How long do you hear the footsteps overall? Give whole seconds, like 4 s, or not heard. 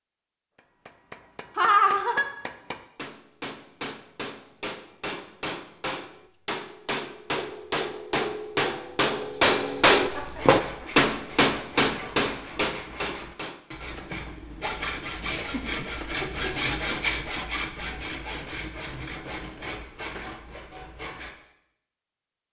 not heard.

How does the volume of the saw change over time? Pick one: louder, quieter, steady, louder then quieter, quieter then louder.
louder then quieter.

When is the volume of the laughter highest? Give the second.
2 s.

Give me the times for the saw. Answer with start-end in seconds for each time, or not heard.
10.0-21.3.